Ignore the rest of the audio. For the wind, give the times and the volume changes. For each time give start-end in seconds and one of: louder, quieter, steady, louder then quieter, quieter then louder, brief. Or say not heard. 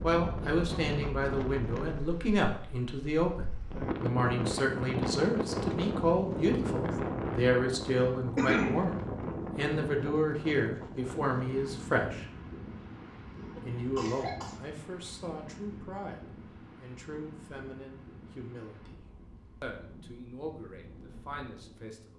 0.0-22.1 quieter.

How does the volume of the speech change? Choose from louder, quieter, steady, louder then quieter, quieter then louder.
quieter.